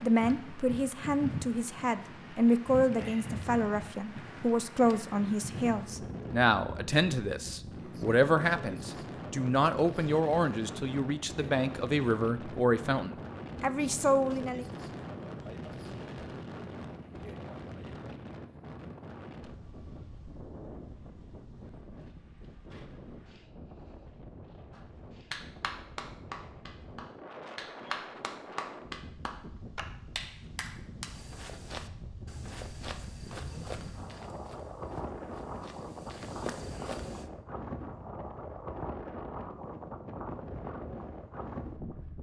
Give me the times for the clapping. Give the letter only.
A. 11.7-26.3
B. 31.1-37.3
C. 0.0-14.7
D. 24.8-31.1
D.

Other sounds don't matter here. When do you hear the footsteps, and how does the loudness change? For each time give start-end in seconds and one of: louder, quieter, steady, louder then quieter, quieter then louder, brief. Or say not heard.
31.1-37.3 quieter then louder.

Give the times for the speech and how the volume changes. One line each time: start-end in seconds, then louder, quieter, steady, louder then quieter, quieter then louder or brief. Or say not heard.
0.0-14.7 steady.